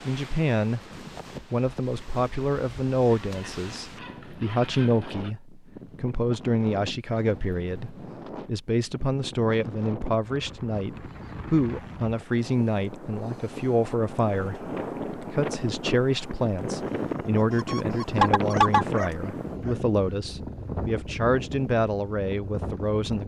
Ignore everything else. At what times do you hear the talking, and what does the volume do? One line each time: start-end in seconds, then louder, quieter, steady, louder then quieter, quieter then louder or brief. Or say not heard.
0.1-0.8 brief
1.5-23.2 steady.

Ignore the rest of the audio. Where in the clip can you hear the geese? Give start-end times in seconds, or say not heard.
3.0-5.3, 17.4-18.9.